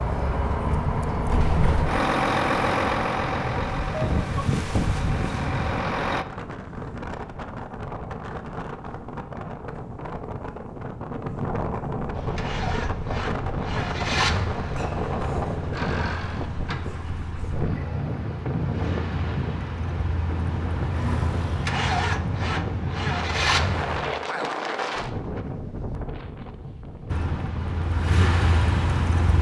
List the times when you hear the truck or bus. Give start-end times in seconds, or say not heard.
0.0-6.2, 12.1-24.1, 27.1-29.3.